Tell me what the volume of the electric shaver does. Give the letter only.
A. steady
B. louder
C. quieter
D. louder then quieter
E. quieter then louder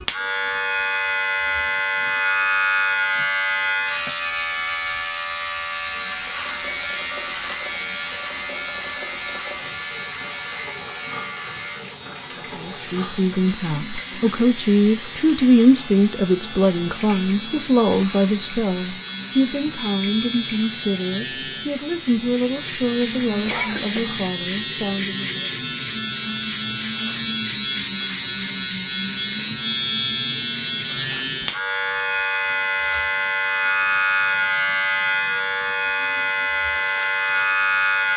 E.